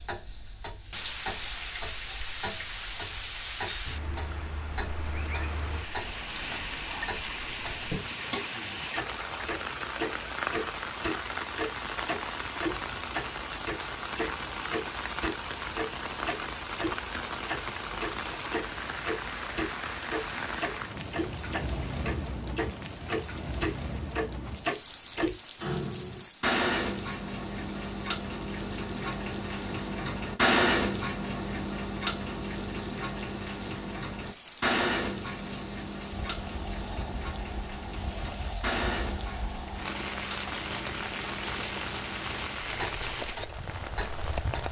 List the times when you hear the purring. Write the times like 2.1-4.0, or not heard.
not heard.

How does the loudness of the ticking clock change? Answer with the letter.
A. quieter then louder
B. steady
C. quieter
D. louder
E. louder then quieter
E.